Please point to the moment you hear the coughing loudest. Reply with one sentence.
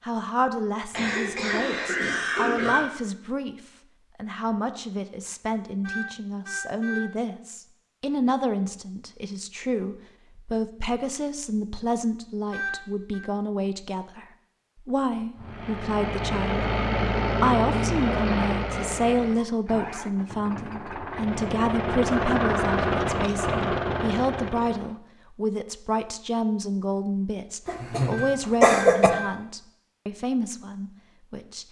The loudest moment of the coughing is at 29 seconds.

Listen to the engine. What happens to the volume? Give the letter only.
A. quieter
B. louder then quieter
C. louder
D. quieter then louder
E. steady
D.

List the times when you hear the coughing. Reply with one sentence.
You can hear the coughing from 0.9 to 2.8 s, from 18.1 to 19.4 s and from 27.6 to 29.1 s.